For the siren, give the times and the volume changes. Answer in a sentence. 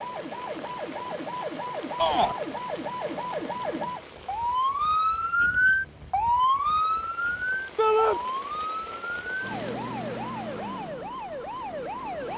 You can hear the siren from 0.0 to 12.3 s, getting louder then quieter.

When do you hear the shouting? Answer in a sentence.
The shouting can be heard from 1.9 to 2.4 s and from 7.8 to 8.2 s.